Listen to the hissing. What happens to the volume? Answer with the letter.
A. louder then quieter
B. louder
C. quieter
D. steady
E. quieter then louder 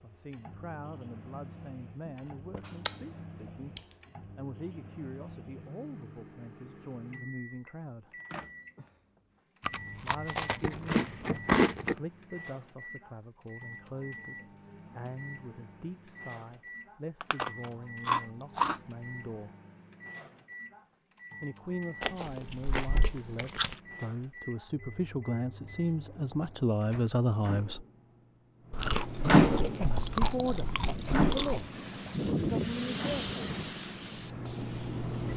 A.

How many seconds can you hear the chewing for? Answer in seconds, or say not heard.
10 s.